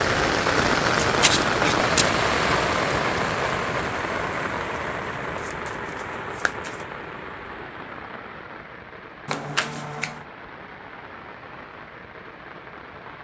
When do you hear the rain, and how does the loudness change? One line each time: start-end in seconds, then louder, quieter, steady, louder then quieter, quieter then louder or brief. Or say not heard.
0.0-13.2 quieter.